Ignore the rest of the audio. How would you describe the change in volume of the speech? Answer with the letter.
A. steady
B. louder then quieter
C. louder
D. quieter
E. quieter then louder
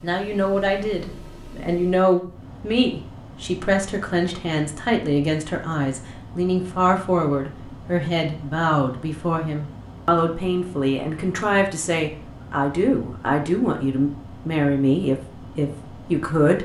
A.